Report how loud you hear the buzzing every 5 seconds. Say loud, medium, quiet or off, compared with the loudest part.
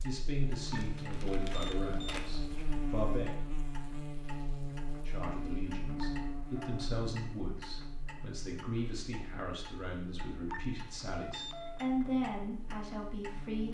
loud, loud, medium.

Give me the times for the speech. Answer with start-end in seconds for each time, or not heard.
0.0-3.4, 5.0-13.6.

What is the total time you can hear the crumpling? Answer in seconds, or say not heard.
2 s.